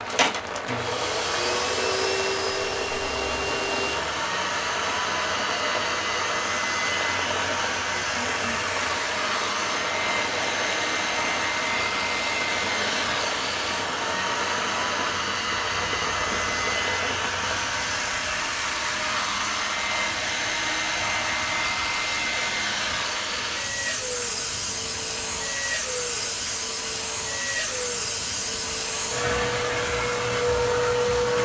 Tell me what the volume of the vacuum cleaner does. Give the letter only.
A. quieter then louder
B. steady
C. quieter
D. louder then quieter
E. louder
B.